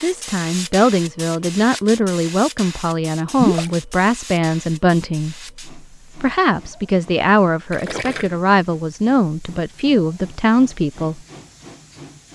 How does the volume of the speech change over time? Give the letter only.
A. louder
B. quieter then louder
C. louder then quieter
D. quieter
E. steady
E.